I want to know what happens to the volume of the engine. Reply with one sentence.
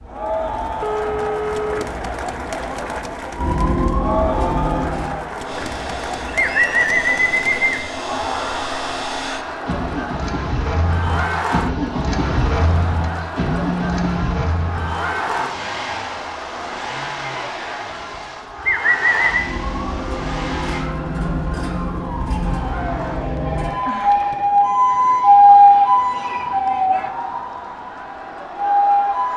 The loudness of the engine goes up, then down.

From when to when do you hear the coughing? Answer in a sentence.
You can't hear the coughing here.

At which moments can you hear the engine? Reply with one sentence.
You can hear the engine from 5.4 to 20.9 s.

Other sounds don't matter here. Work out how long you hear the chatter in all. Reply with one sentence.
You can hear the chatter for 29 seconds altogether.